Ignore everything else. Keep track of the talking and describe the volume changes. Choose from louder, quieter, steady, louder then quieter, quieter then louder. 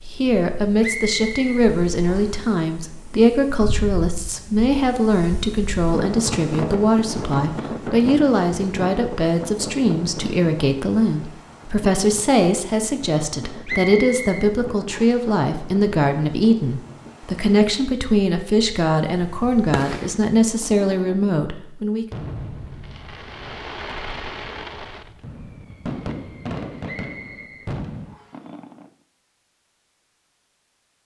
steady.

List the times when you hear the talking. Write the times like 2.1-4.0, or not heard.
0.1-22.1.